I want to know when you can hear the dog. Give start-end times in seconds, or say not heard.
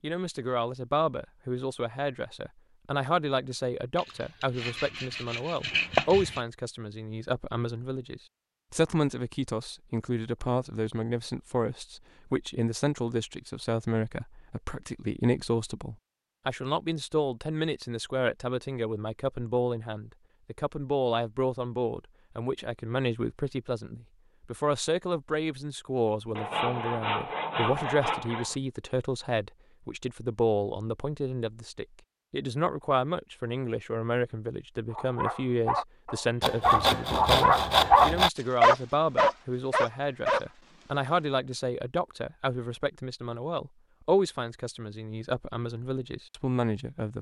34.9-40.9.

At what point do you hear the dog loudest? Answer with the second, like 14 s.
38 s.